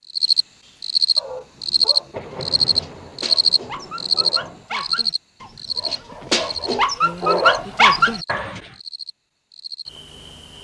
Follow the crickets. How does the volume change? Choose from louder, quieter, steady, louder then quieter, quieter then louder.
quieter.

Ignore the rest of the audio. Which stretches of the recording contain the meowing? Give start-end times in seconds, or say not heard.
not heard.